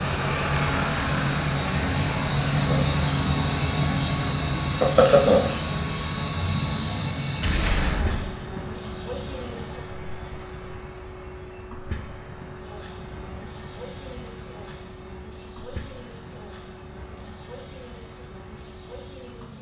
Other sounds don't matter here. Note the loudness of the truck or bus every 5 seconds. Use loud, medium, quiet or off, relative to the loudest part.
loud, medium, medium, quiet.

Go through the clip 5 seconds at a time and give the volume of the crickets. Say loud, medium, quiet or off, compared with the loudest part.
loud, loud, quiet, quiet.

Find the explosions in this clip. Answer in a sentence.
You can hear the explosions from 7.4 to 8.3 s.